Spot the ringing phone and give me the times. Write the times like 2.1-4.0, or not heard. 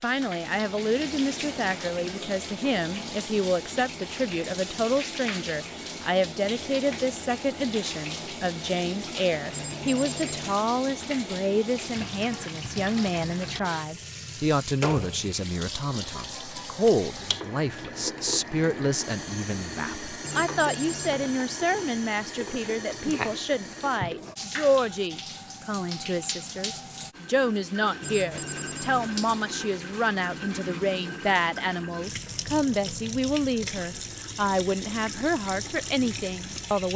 9.5-10.6, 20.2-21.3, 28.0-29.1.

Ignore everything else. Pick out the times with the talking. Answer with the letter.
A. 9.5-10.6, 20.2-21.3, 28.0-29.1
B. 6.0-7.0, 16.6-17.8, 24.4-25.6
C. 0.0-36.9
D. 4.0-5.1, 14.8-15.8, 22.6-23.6
C.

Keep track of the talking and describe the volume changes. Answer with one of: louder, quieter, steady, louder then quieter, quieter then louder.
steady.